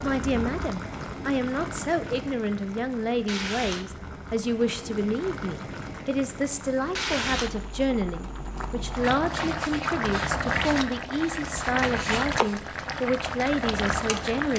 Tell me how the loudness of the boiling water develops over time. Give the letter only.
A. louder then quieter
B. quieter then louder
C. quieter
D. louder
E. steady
D.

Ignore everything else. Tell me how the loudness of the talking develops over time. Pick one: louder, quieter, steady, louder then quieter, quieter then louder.
steady.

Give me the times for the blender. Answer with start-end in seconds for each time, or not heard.
not heard.